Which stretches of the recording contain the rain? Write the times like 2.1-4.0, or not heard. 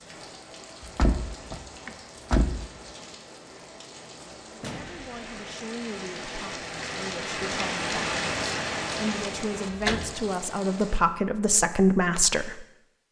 0.0-11.0.